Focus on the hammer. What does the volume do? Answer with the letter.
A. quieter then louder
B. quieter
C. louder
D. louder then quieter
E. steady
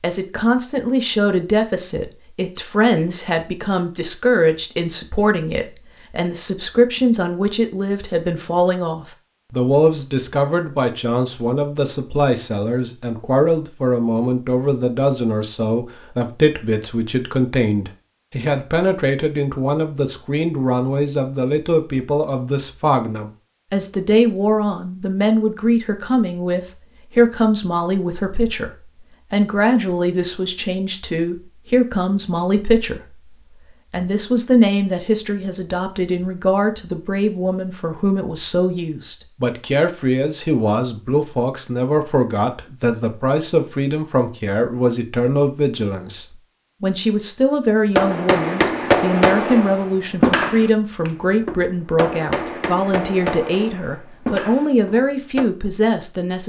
B.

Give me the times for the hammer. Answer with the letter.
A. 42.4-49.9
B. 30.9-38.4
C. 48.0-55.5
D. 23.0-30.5
C.